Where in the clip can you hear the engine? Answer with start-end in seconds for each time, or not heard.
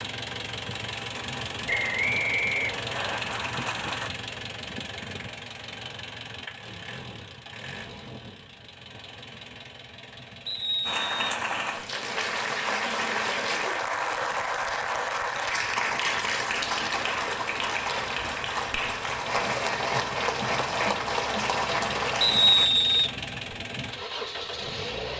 0.0-25.1.